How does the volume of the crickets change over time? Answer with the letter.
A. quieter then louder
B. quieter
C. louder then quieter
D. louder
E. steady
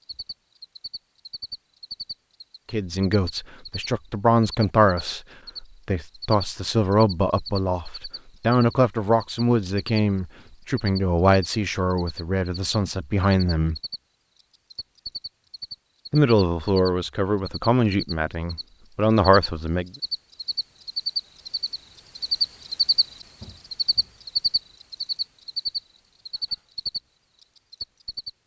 D.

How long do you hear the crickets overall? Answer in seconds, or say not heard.
28 s.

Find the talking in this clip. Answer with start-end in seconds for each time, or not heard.
2.7-13.8, 16.1-19.9.